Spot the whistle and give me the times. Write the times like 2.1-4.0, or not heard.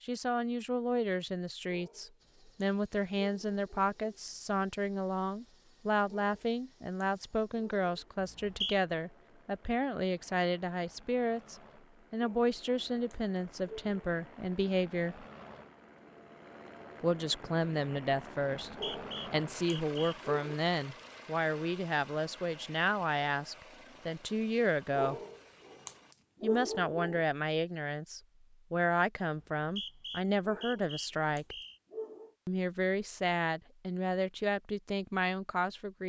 8.2-8.8, 18.6-20.1, 29.4-31.8.